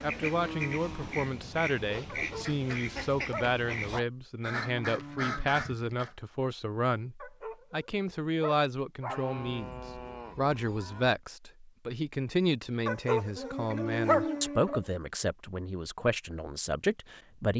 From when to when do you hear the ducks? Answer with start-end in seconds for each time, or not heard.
0.0-6.2.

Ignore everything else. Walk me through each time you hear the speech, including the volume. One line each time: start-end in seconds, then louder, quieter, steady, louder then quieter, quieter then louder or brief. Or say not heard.
0.0-17.5 steady.